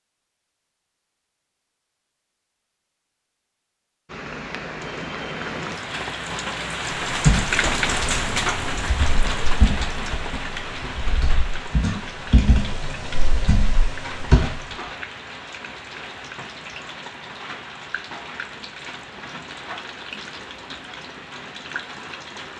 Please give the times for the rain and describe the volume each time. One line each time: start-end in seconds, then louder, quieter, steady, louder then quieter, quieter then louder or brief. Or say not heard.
4.0-22.5 quieter.